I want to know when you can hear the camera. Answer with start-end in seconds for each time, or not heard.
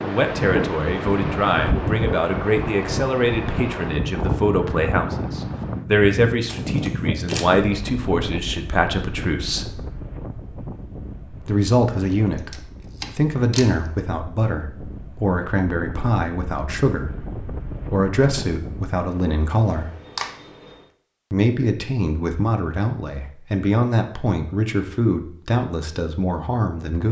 6.5-7.5, 12.3-13.7, 19.6-20.9.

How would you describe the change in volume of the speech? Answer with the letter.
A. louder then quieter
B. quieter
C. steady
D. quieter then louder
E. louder
C.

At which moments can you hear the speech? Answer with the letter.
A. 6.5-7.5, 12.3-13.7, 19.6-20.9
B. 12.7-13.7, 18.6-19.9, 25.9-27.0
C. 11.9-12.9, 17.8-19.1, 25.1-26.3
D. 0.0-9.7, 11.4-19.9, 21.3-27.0
D.